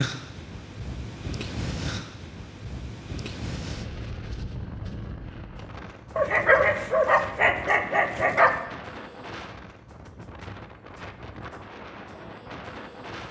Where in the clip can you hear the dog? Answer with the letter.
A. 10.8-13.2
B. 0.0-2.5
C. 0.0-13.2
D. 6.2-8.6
D.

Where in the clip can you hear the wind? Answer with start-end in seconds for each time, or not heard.
0.0-13.2.